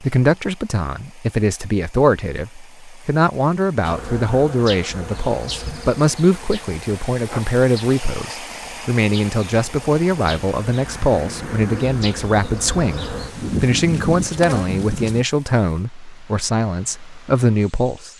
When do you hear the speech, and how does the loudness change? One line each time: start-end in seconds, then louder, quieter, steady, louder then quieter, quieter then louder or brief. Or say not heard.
0.0-18.1 steady.